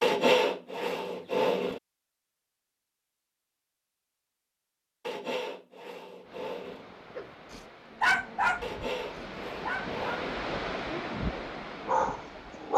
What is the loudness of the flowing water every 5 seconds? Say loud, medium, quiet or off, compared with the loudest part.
off, medium, loud.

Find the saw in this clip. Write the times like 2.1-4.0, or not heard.
0.0-1.8, 5.0-6.8, 8.6-10.2.